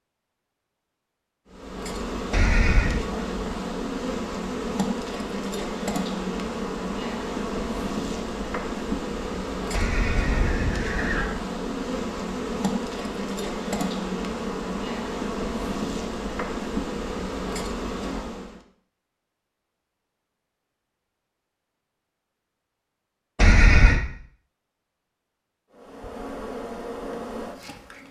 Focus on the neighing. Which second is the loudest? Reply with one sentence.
The loudest moment of the neighing is at 24 seconds.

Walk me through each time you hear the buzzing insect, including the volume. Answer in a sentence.
You can hear the buzzing insect from 1.4 to 18.6 s, at a steady volume; and briefly from 25.7 to 28.0 s.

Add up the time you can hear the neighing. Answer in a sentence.
The neighing can be heard for 3 seconds in total.